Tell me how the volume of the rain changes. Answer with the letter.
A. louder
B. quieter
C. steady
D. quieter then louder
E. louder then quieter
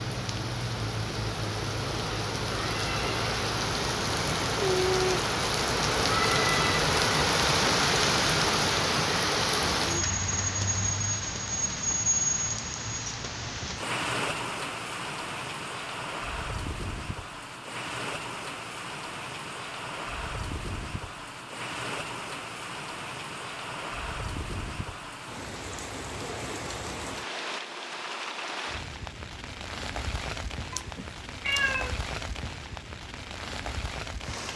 B.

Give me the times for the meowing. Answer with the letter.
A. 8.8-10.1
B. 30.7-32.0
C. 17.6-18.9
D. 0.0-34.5
B.